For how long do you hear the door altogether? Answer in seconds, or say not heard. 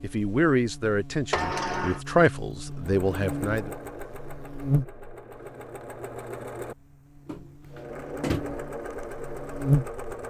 2 s.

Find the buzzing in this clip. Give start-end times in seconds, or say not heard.
0.0-10.0.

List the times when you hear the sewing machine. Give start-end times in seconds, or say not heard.
2.7-10.2.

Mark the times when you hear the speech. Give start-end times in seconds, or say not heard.
0.0-3.7.